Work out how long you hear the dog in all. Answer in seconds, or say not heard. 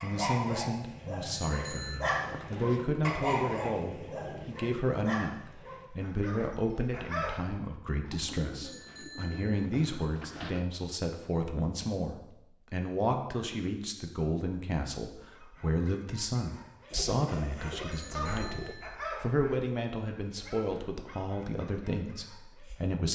15 s.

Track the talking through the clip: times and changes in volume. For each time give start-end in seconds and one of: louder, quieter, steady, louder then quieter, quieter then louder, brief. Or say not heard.
0.0-23.0 steady.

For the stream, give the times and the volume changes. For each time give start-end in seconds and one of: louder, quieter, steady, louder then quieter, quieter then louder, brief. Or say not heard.
not heard.